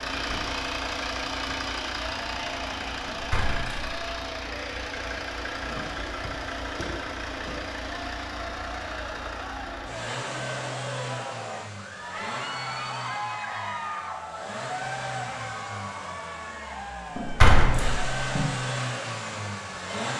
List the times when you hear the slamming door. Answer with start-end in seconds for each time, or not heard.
3.1-4.0, 17.1-18.4.